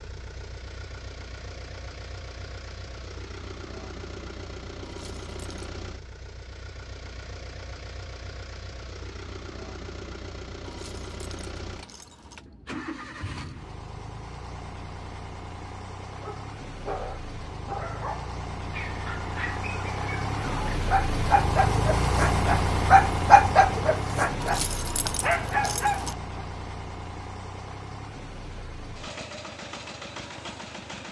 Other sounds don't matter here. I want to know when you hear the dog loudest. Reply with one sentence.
The volume of the dog peaks at 23 seconds.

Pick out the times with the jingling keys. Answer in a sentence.
You can hear the jingling keys from 4.8 to 5.7 s, from 10.6 to 12.4 s and from 24.4 to 26.1 s.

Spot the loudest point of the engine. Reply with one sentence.
The volume of the engine peaks at 22 seconds.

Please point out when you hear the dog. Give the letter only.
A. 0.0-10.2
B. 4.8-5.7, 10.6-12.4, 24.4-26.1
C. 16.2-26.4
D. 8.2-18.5
C.